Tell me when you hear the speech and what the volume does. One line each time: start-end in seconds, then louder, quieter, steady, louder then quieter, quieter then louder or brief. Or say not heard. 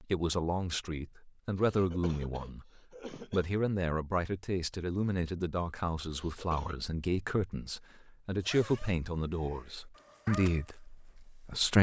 0.0-11.7 steady.